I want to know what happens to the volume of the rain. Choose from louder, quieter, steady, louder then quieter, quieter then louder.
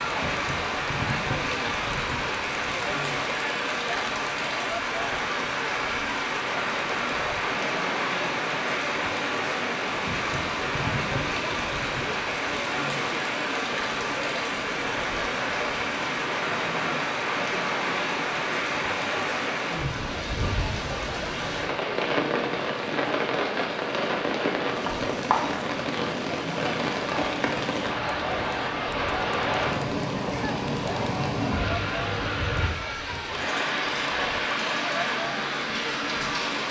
steady.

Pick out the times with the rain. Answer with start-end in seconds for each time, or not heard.
0.0-36.6.